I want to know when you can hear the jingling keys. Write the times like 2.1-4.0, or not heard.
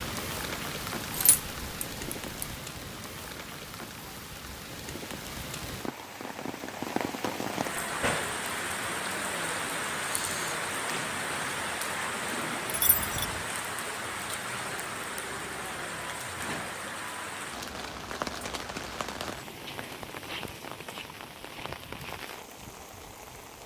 1.1-2.5, 12.7-13.4.